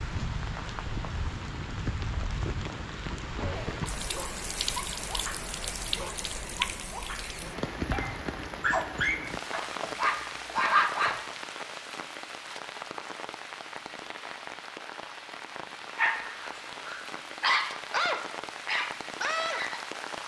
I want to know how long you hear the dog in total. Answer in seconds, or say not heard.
12 s.